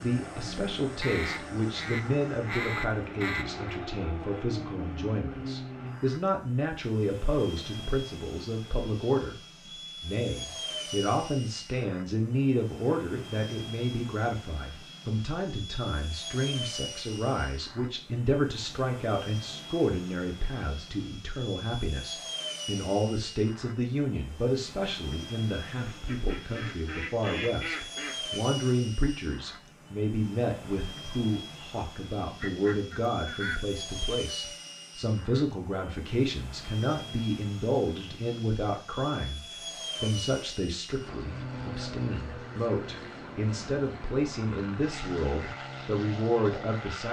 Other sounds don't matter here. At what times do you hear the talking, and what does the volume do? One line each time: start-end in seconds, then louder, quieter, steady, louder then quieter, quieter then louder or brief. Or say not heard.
0.0-39.4 steady
40.0-47.0 louder.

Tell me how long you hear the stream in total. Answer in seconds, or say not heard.
not heard.